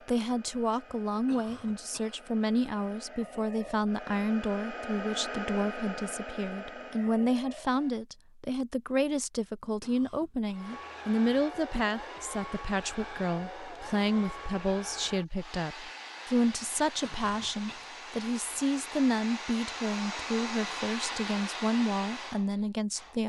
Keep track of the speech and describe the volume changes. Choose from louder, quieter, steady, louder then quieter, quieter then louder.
steady.